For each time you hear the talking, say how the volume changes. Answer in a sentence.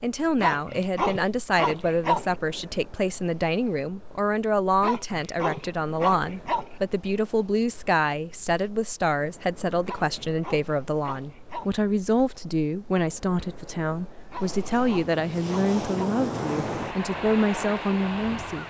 You can hear the talking from 0.0 to 18.6 s, at a steady volume.